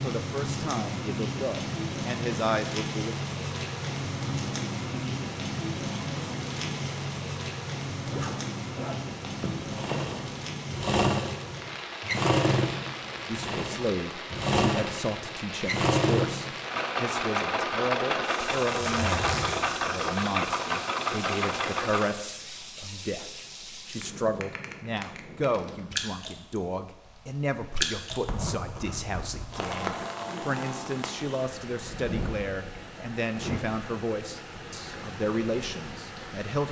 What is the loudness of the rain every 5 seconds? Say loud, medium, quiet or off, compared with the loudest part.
loud, loud, medium, medium, medium, loud, medium, medium.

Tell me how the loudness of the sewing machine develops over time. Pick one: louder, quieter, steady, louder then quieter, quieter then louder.
steady.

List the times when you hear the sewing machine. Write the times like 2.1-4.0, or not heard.
9.6-22.1.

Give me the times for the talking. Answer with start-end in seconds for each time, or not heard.
0.0-3.1, 13.2-36.6.